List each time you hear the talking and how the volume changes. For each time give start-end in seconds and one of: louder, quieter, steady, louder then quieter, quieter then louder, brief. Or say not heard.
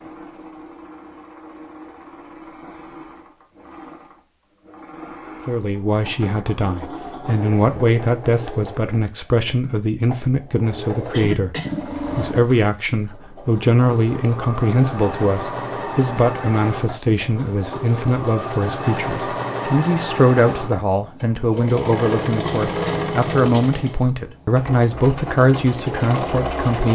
5.5-26.9 steady.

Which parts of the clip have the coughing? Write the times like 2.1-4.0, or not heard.
11.1-11.8, 22.4-23.8.